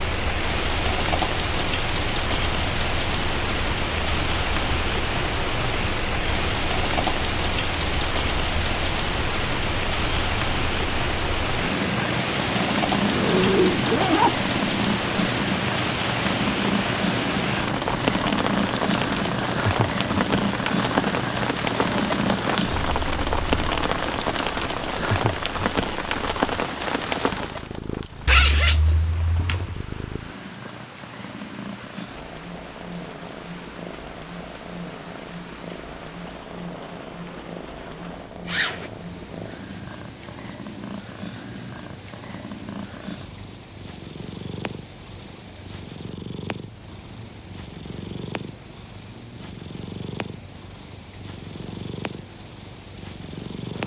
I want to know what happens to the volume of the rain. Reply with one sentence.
The volume of the rain goes down.